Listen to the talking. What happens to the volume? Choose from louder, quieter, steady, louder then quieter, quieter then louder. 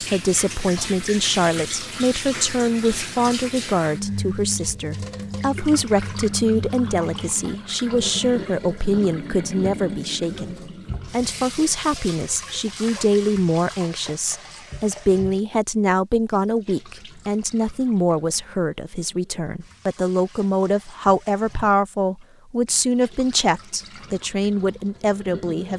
steady.